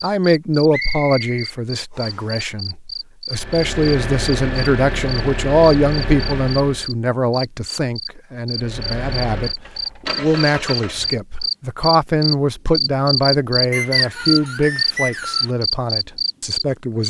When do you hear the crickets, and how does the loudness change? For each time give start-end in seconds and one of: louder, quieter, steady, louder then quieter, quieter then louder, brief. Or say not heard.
0.1-17.0 louder.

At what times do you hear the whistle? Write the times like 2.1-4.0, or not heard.
0.7-2.2, 13.7-15.5.